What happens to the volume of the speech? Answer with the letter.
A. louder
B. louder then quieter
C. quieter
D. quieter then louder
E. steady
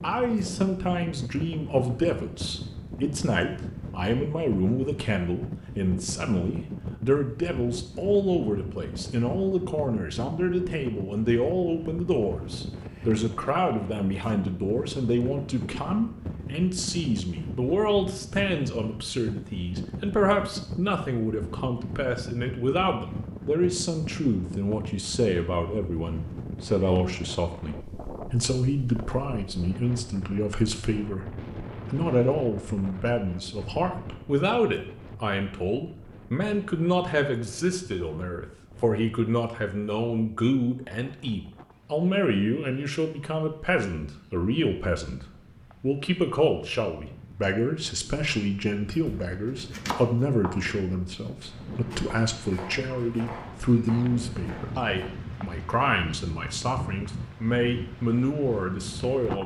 E.